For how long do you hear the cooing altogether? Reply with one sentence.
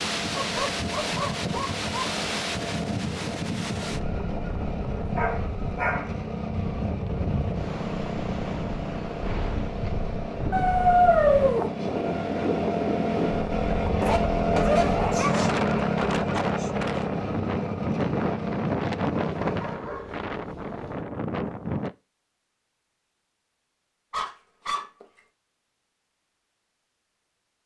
You can't hear the cooing here.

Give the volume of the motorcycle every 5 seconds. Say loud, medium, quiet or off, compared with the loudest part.
medium, medium, loud, loud, off, off.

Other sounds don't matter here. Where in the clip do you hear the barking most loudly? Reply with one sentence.
The volume of the barking peaks at 11 seconds.